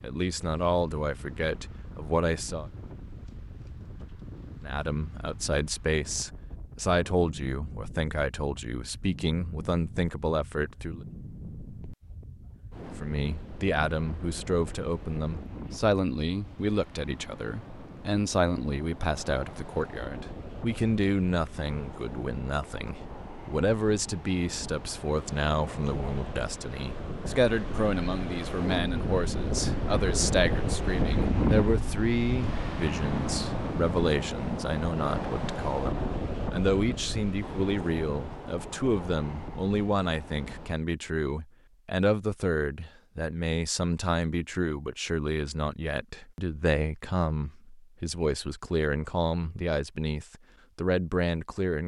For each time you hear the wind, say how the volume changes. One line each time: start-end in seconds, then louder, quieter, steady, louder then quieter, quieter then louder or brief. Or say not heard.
0.0-40.8 louder.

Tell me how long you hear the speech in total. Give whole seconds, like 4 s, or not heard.
48 s.